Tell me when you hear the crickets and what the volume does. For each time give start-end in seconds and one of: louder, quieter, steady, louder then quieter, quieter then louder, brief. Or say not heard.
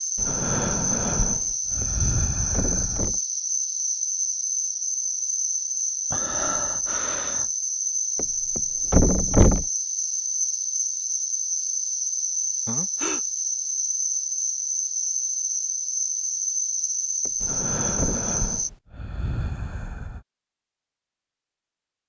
0.0-18.7 steady.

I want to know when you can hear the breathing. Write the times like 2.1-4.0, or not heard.
0.1-3.0, 6.1-7.5, 12.7-13.2, 17.4-20.2.